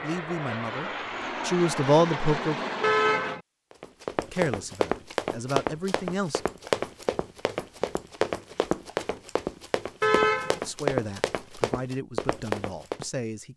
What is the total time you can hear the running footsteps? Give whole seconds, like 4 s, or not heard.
9 s.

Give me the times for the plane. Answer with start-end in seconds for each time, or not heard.
0.0-3.4.